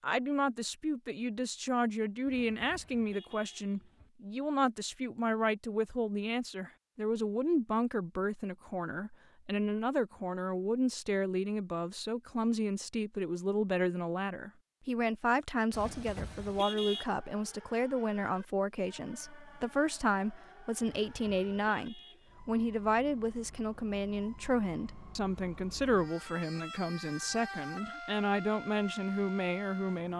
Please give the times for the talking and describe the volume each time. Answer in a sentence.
You can hear the talking from 0.0 to 30.1 s, at a steady volume.